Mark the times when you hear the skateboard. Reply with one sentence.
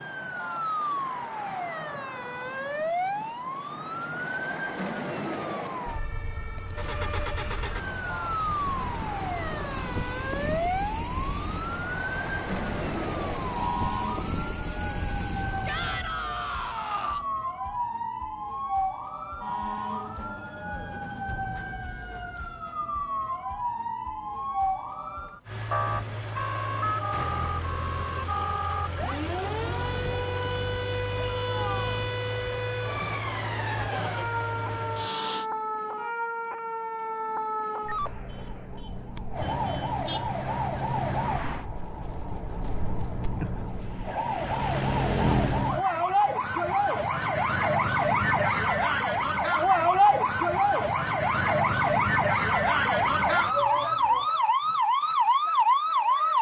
The skateboard can't be heard in this clip.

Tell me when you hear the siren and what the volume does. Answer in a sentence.
The siren can be heard from 0.0 to 56.3 s, getting louder.